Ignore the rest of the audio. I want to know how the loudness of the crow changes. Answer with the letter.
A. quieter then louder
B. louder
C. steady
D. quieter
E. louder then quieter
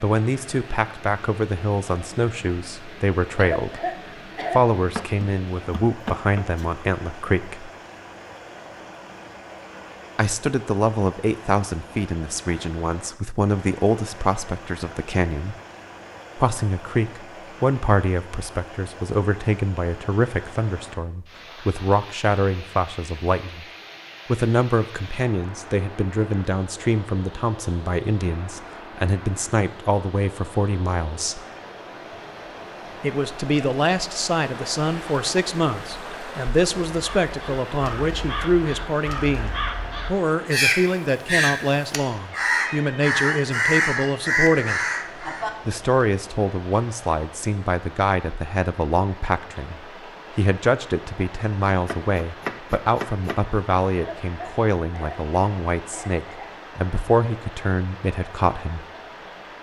B.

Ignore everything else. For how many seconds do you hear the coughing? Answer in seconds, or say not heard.
4 s.